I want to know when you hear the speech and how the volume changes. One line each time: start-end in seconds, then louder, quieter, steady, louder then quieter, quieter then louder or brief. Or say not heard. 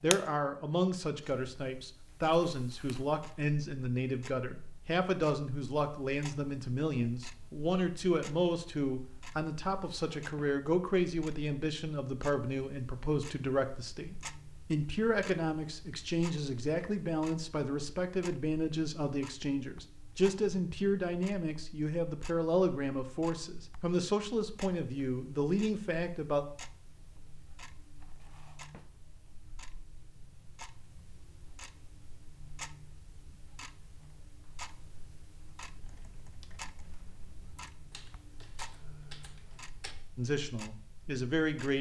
0.0-26.4 steady
40.1-41.7 brief.